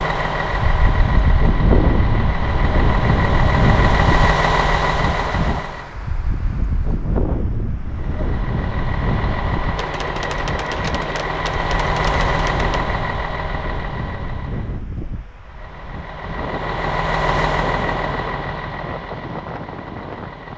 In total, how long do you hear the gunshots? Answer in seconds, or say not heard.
3 s.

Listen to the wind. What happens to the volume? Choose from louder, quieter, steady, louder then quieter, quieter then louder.
quieter.